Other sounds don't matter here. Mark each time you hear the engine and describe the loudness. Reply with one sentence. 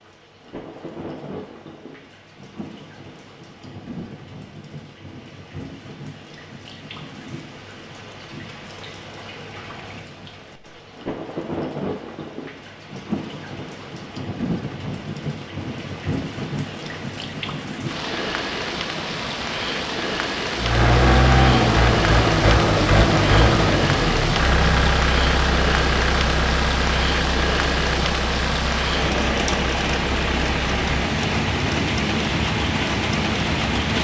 The engine can be heard from 20.6 to 34.0 s, getting quieter.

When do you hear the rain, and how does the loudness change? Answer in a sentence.
The rain can be heard from 0.0 to 34.0 s, getting louder.